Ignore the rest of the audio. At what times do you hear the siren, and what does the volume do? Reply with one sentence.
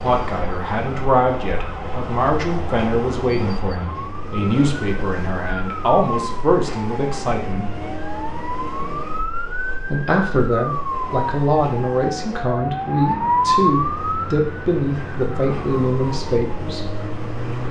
You can hear the siren from 0.0 to 17.6 s, getting louder then quieter.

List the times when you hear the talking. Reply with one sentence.
You can hear the talking from 0.0 to 7.7 s and from 9.9 to 17.0 s.